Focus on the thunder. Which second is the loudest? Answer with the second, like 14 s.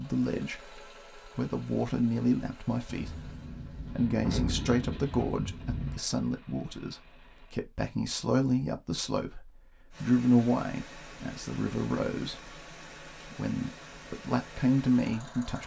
4 s.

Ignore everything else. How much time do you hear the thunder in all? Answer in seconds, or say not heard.
3 s.